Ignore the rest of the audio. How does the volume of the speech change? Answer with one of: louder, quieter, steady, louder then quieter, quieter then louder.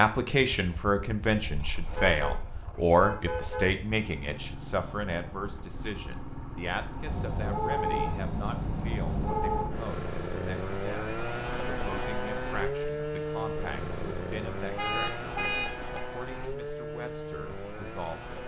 quieter.